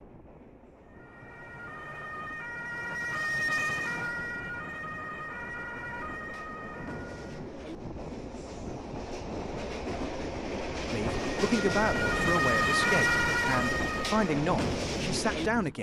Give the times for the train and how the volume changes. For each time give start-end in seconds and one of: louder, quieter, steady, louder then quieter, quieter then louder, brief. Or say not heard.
0.0-15.7 louder.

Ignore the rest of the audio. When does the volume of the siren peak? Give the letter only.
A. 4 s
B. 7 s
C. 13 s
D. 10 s
C.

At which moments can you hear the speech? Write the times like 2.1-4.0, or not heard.
10.9-15.7.